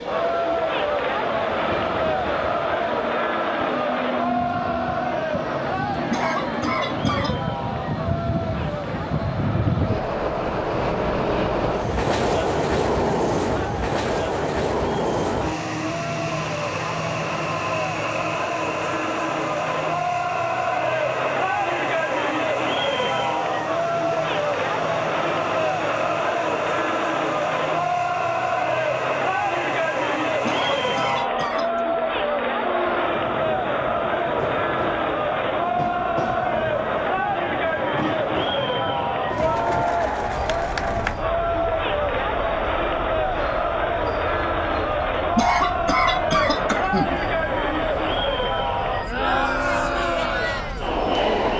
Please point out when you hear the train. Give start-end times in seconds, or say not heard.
0.0-51.5.